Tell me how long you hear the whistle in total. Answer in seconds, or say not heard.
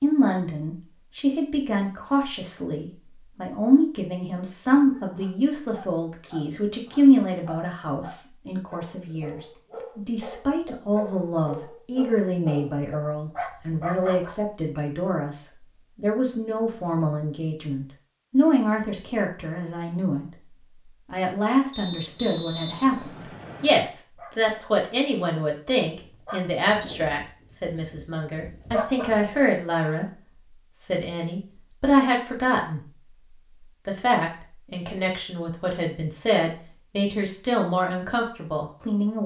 2 s.